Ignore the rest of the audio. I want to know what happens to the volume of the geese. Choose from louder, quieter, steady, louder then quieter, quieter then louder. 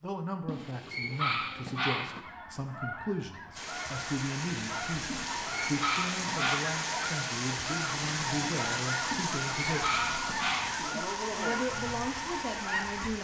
louder.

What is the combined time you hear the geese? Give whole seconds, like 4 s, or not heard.
11 s.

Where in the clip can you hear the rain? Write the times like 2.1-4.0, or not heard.
3.5-13.1.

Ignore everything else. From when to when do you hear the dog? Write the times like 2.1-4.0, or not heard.
0.5-2.2, 5.1-6.7, 9.1-10.8.